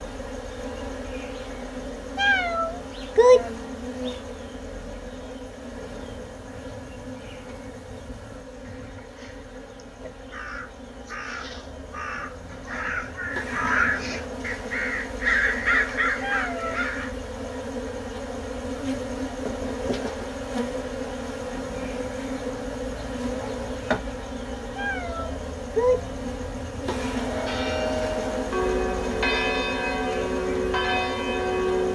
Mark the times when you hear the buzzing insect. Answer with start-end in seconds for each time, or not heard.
0.0-31.9.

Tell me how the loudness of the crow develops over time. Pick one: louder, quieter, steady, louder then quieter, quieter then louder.
louder.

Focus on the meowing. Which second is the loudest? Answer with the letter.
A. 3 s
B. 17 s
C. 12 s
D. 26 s
A.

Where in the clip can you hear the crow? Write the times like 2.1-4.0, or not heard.
5.8-17.1.